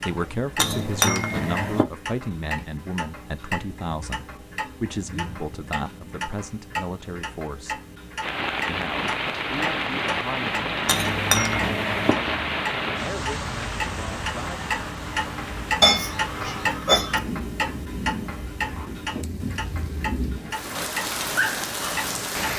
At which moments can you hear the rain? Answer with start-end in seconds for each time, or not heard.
8.2-22.5.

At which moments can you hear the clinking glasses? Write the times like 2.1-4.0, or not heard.
0.6-1.9, 10.8-12.2, 15.8-17.2.